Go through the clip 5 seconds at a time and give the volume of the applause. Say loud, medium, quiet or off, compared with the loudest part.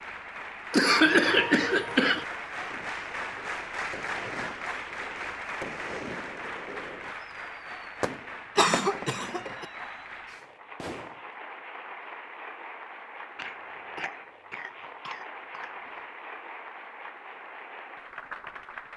loud, loud, medium, medium.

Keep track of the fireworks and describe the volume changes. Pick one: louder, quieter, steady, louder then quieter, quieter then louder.
louder then quieter.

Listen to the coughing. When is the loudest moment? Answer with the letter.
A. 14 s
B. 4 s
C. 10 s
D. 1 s
D.